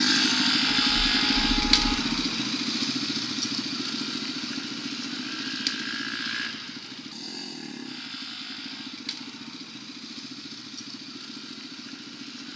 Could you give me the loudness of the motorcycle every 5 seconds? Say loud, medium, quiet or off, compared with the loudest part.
loud, medium, quiet.